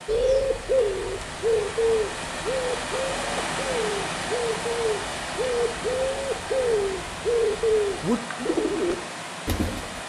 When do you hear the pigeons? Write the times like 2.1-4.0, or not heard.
0.1-10.0.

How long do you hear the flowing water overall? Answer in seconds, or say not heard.
10 s.